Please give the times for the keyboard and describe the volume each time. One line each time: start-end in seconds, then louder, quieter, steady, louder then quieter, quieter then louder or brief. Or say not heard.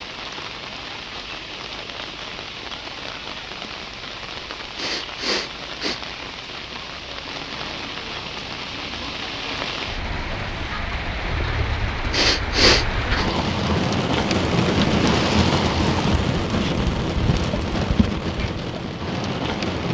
not heard.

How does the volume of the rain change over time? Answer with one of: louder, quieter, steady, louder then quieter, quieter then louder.
louder.